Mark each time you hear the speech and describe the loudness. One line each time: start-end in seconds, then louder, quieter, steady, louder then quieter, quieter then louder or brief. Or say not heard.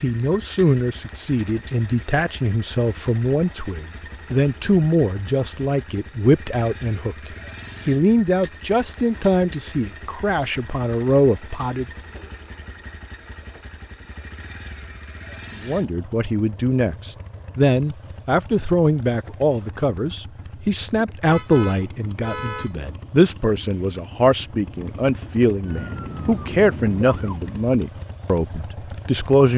0.0-11.8 steady
15.6-29.5 steady.